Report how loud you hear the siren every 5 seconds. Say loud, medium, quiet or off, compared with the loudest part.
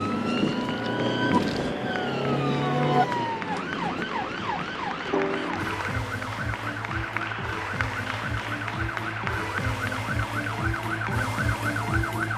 loud, medium, loud.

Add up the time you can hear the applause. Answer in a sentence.
You can hear the applause for 12 seconds altogether.